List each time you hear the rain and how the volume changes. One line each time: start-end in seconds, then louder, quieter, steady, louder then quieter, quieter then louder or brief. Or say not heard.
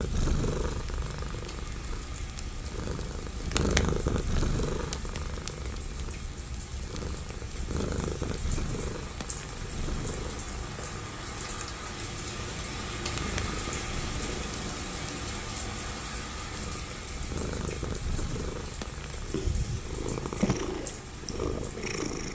0.0-22.3 louder then quieter.